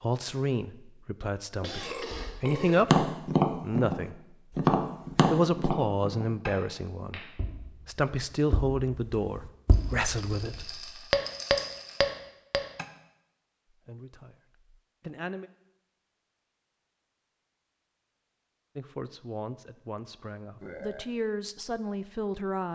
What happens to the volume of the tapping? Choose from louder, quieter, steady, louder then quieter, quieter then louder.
quieter then louder.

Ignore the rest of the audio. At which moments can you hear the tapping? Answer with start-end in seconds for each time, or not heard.
2.5-12.8.